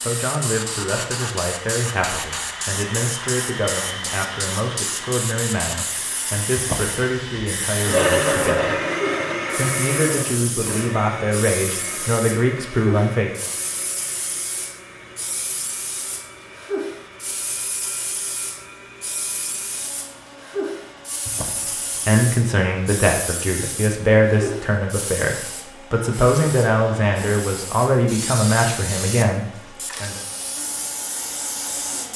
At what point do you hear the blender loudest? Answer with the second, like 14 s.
8 s.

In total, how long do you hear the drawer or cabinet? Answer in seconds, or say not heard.
2 s.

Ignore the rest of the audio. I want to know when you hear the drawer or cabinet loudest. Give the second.
7 s.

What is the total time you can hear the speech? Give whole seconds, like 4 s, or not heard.
21 s.